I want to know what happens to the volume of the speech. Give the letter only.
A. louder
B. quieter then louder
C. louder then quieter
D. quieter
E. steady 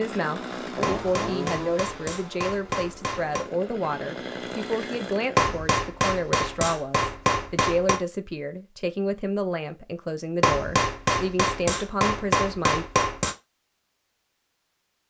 E.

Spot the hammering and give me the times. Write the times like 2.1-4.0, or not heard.
0.8-3.5, 5.3-8.0, 10.4-13.3.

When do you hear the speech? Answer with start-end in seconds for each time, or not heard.
0.0-12.8.